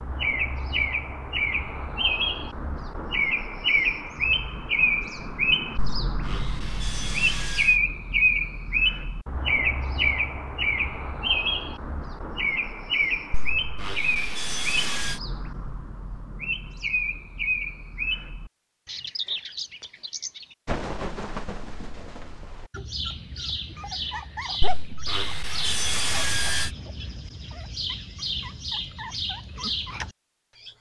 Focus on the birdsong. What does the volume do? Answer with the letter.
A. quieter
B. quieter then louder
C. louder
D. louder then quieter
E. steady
A.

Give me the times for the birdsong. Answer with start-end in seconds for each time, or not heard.
0.0-30.7.